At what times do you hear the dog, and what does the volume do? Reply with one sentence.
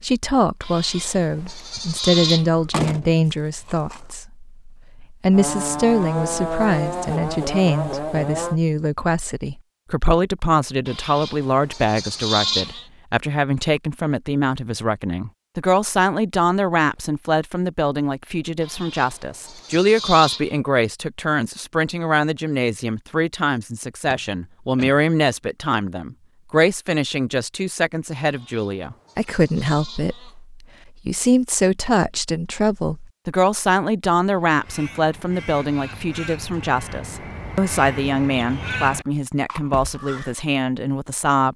The dog can't be heard in this clip.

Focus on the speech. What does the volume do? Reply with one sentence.
The volume of the speech stays about the same.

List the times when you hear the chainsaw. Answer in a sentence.
The chainsaw can be heard from 5.3 to 8.6 s.